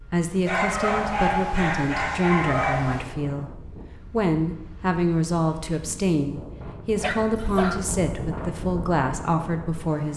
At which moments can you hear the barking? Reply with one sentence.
The barking can be heard from 0.5 to 3.0 s and from 7.0 to 7.8 s.